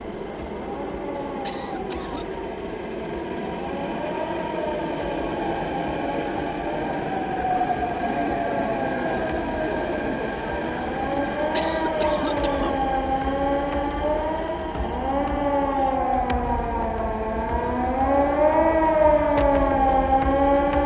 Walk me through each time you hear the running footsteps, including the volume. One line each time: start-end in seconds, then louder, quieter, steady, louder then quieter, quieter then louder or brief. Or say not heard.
not heard.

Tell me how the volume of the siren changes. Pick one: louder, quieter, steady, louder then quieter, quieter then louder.
louder.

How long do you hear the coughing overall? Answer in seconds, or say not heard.
3 s.